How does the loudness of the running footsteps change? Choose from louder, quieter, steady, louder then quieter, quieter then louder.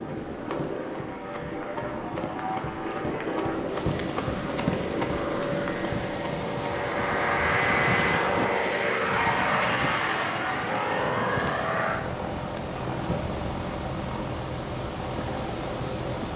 louder.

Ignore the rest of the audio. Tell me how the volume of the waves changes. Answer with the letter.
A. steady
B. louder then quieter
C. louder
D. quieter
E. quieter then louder
C.